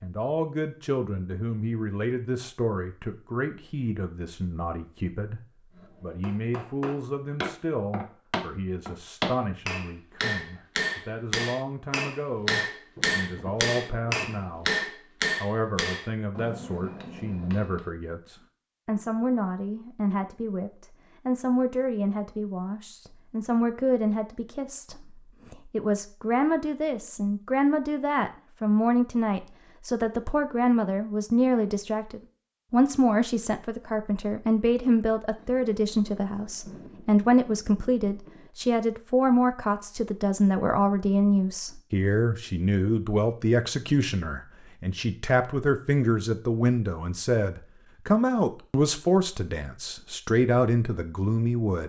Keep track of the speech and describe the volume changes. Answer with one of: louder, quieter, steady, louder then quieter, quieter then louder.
louder.